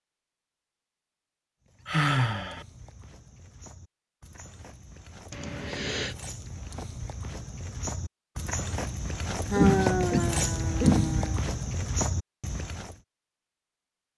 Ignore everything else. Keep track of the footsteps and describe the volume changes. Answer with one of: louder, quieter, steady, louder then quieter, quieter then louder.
louder.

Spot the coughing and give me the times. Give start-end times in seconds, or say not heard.
9.6-11.3.